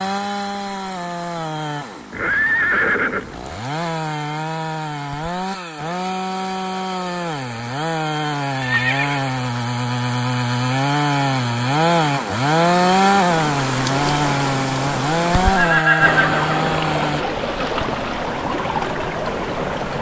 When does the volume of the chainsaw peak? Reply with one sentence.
The loudest moment of the chainsaw is at 13 seconds.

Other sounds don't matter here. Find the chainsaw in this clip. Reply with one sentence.
You can hear the chainsaw from 0.0 to 17.2 s.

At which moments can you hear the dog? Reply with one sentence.
The dog can't be heard in this clip.